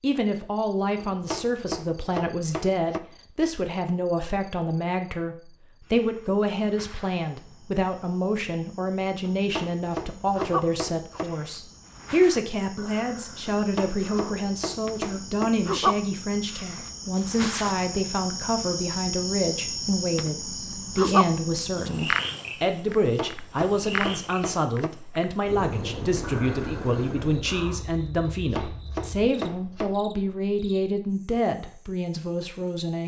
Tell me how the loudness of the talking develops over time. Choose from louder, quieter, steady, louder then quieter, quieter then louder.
steady.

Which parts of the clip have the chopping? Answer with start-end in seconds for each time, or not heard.
0.9-3.0, 9.2-11.2, 13.6-15.5, 22.9-24.9, 28.2-29.9.